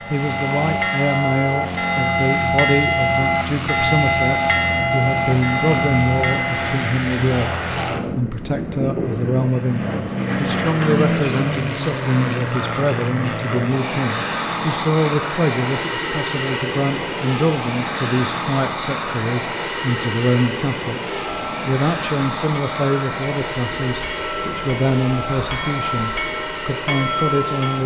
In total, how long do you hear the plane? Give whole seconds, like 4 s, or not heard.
28 s.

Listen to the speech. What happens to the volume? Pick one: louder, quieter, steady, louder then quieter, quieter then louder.
steady.